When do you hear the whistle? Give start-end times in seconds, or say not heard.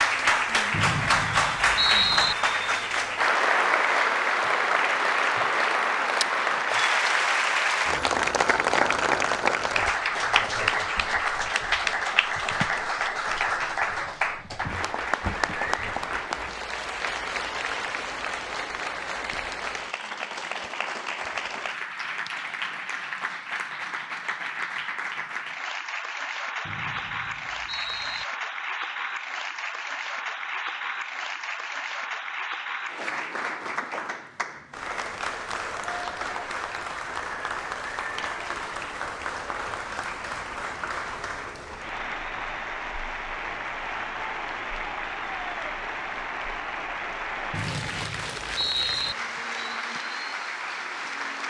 0.7-2.4, 26.6-28.2, 47.5-49.1.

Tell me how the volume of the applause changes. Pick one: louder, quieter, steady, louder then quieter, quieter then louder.
quieter.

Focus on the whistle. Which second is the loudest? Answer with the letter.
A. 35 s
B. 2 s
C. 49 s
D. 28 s
B.